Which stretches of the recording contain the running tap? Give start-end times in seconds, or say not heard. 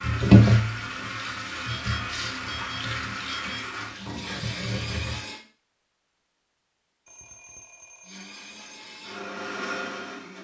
0.0-5.2.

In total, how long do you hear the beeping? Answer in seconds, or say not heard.
4 s.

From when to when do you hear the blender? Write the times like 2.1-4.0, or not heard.
0.0-5.4, 8.0-10.3.